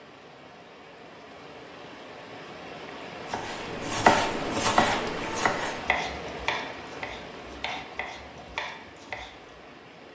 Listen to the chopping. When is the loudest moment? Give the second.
4 s.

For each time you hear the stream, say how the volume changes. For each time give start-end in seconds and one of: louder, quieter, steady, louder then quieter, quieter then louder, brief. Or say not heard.
0.0-10.1 louder then quieter.